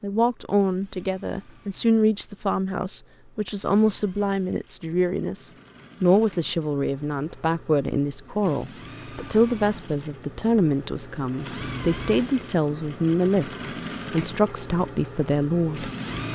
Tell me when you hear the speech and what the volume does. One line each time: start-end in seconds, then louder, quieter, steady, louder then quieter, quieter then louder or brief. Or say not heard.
0.0-16.3 steady.